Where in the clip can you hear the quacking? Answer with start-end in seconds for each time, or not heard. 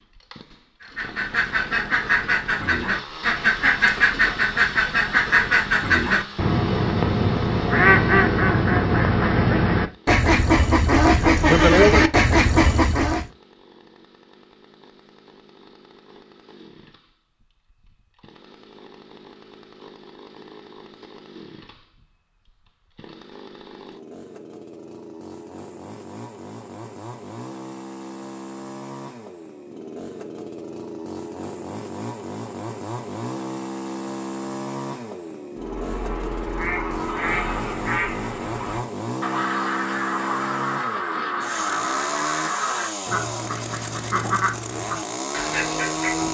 0.8-13.2, 35.5-46.2.